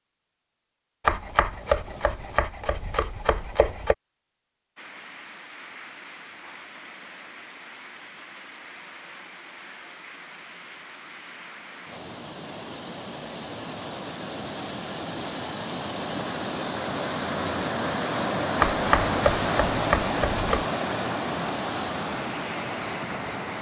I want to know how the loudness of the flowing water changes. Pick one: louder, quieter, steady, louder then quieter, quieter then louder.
louder.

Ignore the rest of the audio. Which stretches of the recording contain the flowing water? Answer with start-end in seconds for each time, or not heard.
4.8-23.5.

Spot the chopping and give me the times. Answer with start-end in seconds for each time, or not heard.
1.1-4.0, 18.6-20.6.